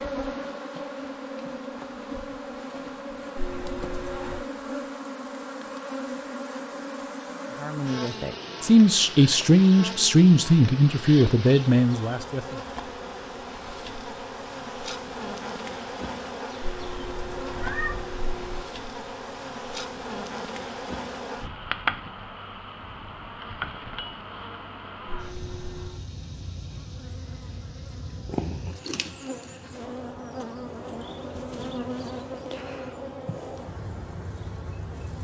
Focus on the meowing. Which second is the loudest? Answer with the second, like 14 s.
18 s.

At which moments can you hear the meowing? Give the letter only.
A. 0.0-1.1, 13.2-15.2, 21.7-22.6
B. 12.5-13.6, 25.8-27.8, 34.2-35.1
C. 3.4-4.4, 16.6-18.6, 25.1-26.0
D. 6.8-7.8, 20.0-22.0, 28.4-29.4
C.